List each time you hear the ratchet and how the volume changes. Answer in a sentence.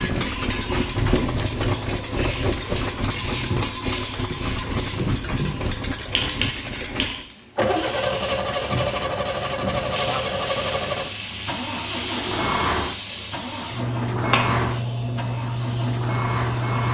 The ratchet can't be heard in this clip.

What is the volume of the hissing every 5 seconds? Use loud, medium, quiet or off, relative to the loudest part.
medium, medium, loud, loud.